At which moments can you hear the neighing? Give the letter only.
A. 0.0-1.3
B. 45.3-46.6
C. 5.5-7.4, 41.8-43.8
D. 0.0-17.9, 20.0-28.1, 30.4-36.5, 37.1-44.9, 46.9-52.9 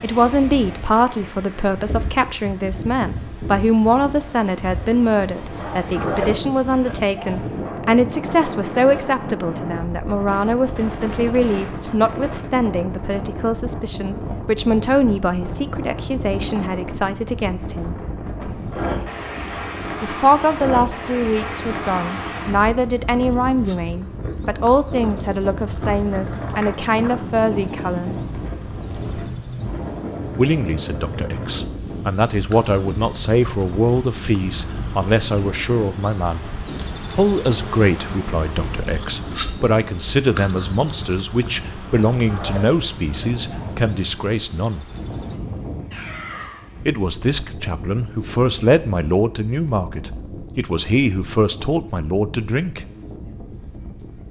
B.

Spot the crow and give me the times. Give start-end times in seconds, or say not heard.
not heard.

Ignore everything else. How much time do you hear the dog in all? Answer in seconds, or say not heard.
4 s.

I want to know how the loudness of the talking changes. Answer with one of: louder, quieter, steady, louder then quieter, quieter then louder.
steady.